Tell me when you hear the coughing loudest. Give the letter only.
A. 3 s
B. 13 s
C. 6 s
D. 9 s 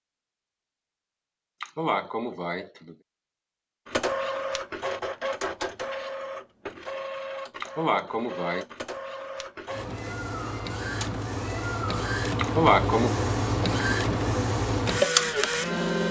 B.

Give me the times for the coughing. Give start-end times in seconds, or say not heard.
1.6-3.0, 7.6-8.7, 12.3-13.2.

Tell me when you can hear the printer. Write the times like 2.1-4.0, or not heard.
3.9-16.0.